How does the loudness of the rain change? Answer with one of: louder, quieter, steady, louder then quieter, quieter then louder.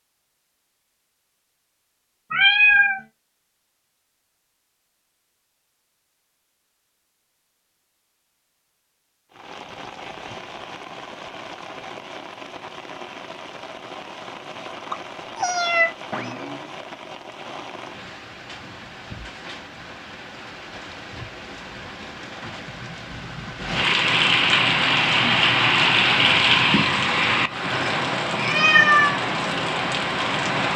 louder.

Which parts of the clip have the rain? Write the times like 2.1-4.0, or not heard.
9.3-30.7.